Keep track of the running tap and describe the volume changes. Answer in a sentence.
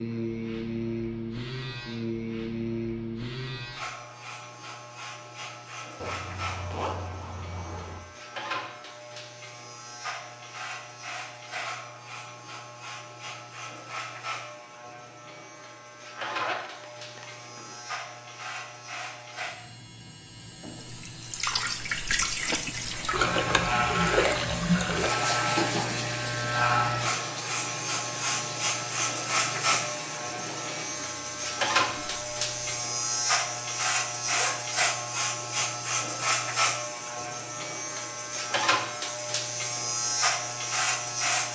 The loudness of the running tap goes down.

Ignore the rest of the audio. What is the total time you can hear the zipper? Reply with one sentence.
The zipper can be heard for 4 seconds in total.